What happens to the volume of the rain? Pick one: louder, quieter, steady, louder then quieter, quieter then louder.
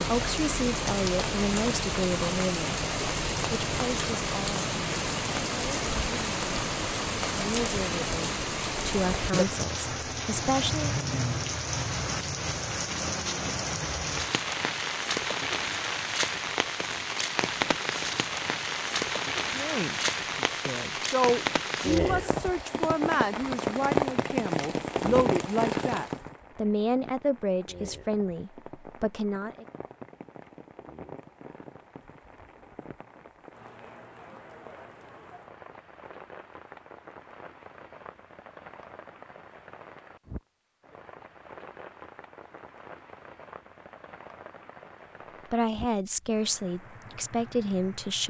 quieter.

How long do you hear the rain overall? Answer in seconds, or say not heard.
48 s.